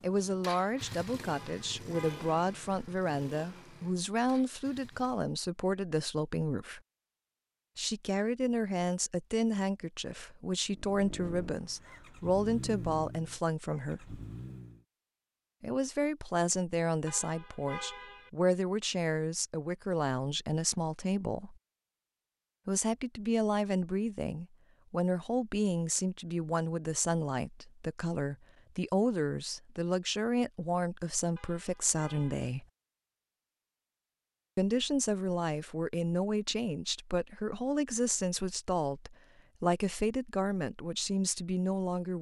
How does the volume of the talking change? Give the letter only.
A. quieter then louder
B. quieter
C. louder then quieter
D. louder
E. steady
E.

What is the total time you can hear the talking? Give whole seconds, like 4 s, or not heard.
37 s.